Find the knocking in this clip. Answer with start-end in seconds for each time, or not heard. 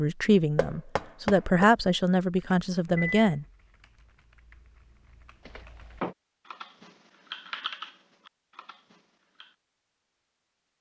0.6-1.6, 5.5-6.2.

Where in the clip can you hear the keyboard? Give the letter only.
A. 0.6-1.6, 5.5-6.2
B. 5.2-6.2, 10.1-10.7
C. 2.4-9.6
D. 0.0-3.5
C.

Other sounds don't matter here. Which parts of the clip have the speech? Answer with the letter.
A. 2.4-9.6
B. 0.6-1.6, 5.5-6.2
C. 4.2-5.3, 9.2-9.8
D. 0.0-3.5
D.